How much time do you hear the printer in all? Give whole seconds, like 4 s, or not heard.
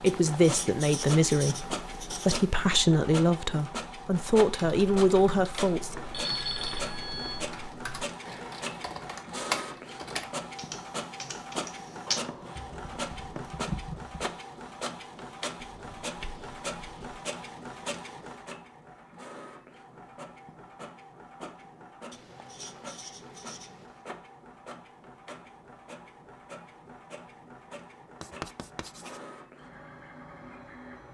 31 s.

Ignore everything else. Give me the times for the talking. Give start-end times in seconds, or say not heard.
0.0-6.0.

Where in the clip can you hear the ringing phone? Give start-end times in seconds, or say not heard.
6.1-7.5.